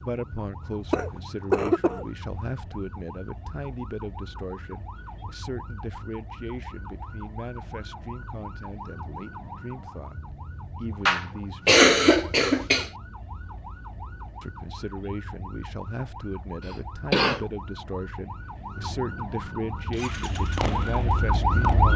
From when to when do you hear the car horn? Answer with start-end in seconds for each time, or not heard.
not heard.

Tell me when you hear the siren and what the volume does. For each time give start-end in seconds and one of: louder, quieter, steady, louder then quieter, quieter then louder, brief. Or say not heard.
0.0-21.9 louder.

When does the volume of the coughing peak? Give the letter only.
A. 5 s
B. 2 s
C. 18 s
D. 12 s
D.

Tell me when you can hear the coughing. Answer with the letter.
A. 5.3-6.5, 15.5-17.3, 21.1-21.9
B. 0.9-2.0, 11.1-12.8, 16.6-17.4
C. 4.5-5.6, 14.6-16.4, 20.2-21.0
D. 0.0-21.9
B.